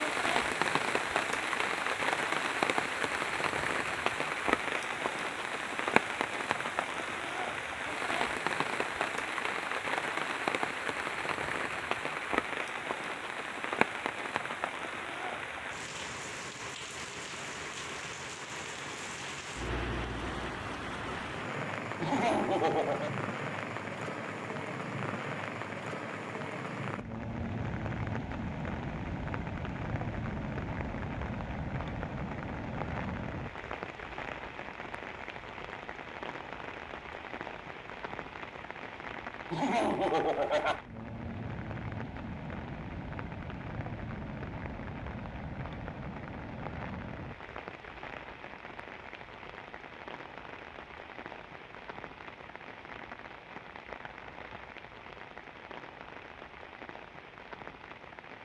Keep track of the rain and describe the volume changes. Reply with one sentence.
The volume of the rain goes down.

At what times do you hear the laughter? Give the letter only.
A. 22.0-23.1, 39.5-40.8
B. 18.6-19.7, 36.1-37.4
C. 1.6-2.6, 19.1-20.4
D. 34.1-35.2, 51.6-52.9
A.